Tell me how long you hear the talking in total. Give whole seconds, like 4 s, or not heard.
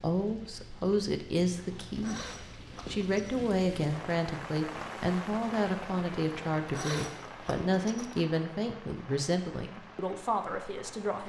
11 s.